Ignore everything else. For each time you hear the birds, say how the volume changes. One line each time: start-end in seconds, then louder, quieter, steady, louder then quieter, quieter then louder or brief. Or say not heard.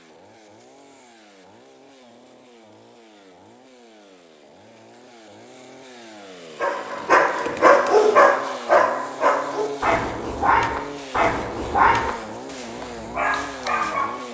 not heard.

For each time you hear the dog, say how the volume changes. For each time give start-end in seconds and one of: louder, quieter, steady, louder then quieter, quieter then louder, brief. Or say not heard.
6.6-14.2 quieter.